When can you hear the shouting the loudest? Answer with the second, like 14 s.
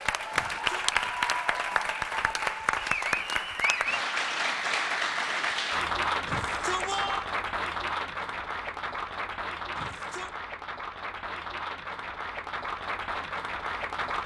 7 s.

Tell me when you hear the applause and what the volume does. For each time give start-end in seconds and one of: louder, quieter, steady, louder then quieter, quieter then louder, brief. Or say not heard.
0.0-14.2 quieter.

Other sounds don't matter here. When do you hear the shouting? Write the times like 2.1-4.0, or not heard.
0.3-0.9, 6.2-7.2, 9.8-10.3.